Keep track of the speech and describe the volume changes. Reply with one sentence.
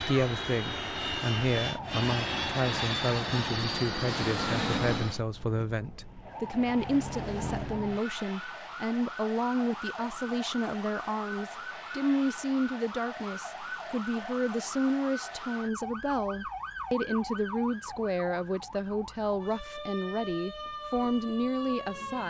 The volume of the speech stays about the same.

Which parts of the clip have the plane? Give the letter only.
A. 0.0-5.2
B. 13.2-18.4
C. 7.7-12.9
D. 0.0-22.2
A.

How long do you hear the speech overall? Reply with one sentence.
You can hear the speech for 22 seconds altogether.